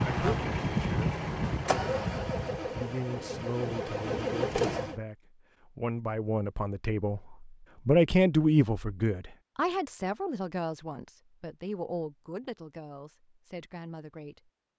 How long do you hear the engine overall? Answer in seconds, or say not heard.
5 s.